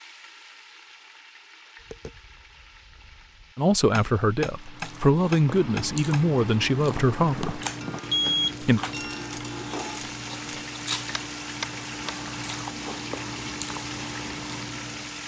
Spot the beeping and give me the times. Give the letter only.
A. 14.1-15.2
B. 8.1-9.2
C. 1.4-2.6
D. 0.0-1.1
B.